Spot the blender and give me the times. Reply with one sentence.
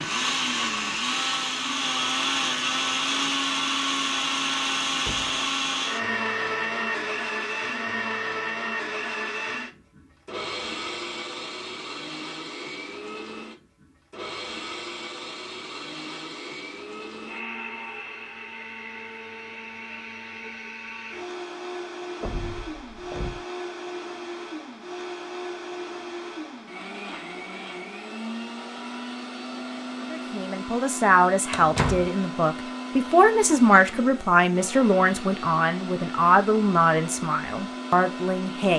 The blender can be heard from 0.0 to 38.7 s.